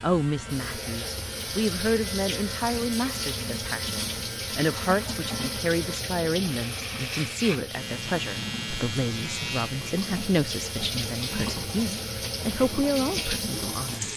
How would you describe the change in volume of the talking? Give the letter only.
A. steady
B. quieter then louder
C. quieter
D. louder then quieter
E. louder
A.